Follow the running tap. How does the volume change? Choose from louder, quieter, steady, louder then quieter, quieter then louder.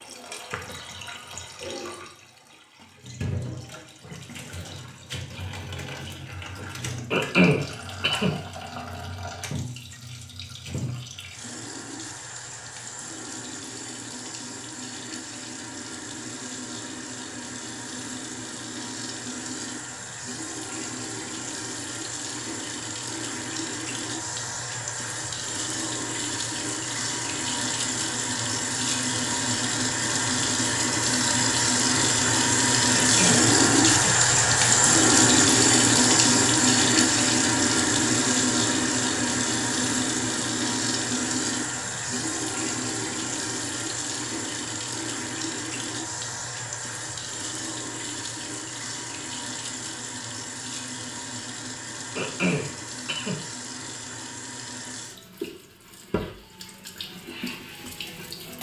louder then quieter.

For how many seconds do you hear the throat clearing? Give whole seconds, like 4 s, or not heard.
4 s.